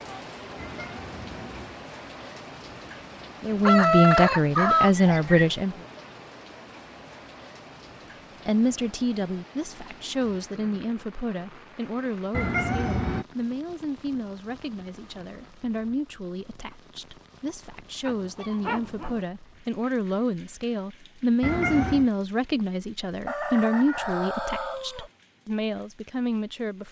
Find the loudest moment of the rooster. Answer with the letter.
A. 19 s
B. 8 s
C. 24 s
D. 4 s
D.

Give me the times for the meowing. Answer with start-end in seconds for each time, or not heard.
0.6-1.8, 12.3-13.2, 21.4-22.1.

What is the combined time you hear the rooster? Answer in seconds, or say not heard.
4 s.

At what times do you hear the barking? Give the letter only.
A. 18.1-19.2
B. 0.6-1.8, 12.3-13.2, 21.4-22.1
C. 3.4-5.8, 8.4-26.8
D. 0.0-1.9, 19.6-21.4
A.